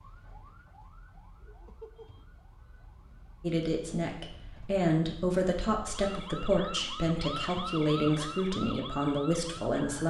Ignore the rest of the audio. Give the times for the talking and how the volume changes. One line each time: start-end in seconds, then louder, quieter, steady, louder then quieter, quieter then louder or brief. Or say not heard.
3.4-10.0 steady.